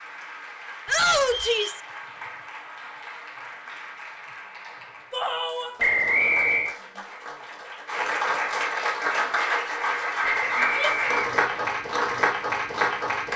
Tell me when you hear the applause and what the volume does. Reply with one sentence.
You can hear the applause from 0.0 to 13.3 s, getting louder.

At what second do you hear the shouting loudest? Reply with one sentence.
The volume of the shouting peaks at 1 second.